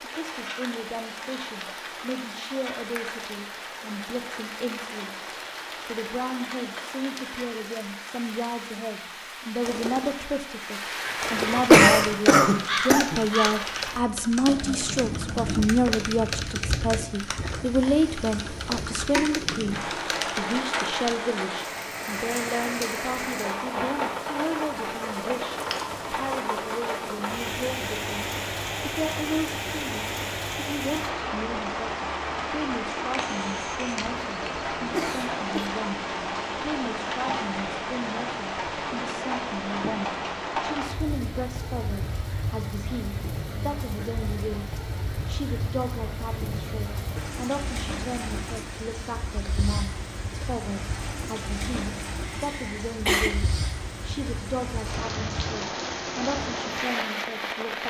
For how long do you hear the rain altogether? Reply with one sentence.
The rain can be heard for 58 seconds in total.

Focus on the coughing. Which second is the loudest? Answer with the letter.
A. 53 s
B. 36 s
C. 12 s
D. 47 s
C.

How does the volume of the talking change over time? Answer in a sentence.
The volume of the talking goes up, then down.